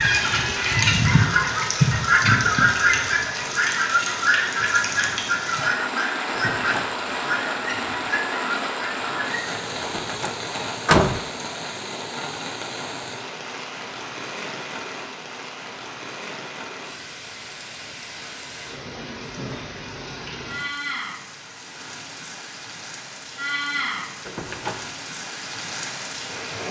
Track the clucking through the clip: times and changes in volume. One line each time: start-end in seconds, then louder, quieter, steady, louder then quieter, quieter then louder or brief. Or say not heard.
0.0-9.7 quieter.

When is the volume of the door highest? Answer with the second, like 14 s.
11 s.